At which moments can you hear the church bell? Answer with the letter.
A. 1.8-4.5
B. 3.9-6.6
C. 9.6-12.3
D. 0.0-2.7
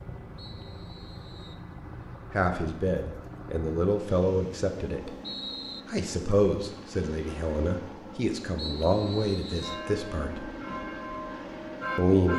C.